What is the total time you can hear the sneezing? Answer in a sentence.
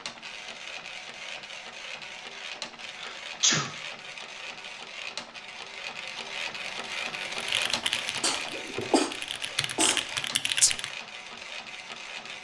The sneezing can be heard for 3 seconds in total.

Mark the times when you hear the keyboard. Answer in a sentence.
The keyboard can be heard from 7.4 to 10.9 s.